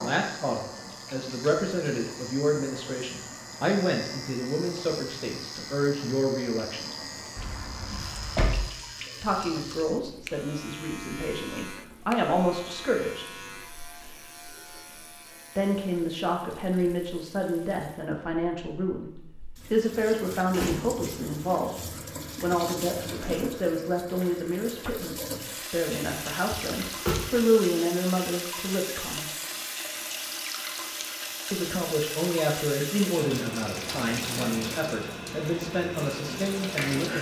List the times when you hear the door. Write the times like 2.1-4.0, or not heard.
7.3-8.7, 20.5-21.1, 26.5-27.3.